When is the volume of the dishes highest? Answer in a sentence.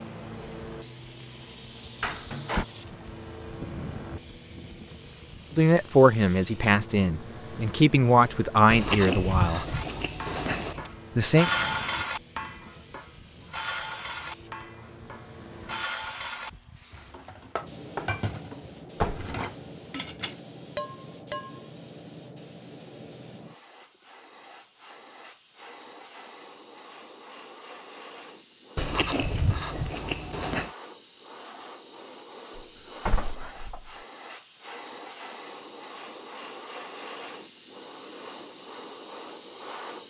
The volume of the dishes peaks at 12 seconds.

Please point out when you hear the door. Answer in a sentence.
You can hear the door from 2.0 to 2.6 s, from 17.9 to 19.4 s and from 32.5 to 33.9 s.